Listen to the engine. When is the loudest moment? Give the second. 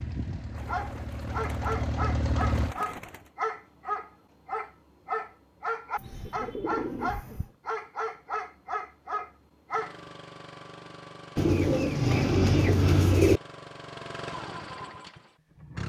2 s.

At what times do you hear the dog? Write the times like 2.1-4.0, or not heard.
0.6-9.9.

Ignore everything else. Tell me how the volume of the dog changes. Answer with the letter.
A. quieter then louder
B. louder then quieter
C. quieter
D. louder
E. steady
E.